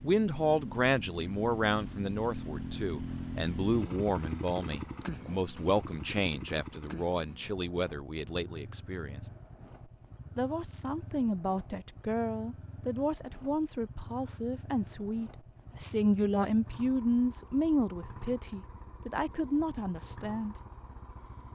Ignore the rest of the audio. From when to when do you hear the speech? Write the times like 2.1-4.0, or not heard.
0.0-9.2, 10.3-20.6.